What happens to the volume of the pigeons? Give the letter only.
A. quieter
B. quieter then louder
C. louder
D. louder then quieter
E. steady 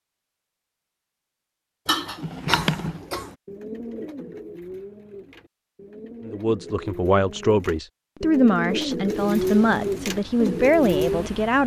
B.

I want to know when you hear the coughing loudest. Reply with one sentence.
The volume of the coughing peaks at 2 seconds.